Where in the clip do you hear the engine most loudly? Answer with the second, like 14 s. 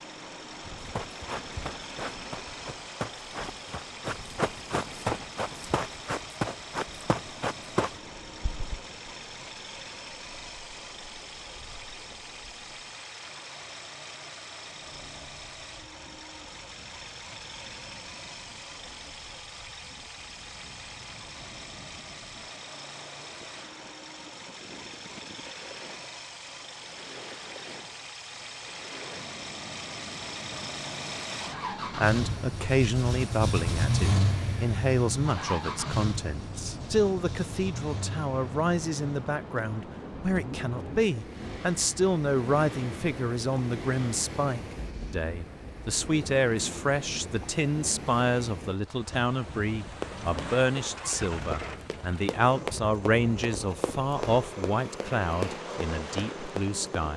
34 s.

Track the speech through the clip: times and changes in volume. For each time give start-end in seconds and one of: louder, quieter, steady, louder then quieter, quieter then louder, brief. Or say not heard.
31.9-57.1 steady.